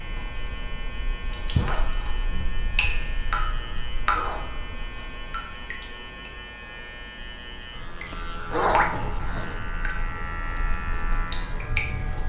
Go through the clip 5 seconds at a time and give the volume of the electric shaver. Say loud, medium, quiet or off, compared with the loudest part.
medium, loud, loud.